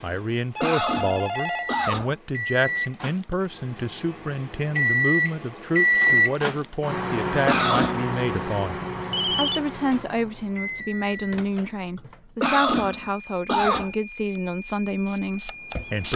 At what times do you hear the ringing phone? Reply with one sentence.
You can hear the ringing phone from 0.6 to 1.9 s and from 8.8 to 9.6 s.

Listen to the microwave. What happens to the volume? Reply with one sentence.
The loudness of the microwave goes up, then down.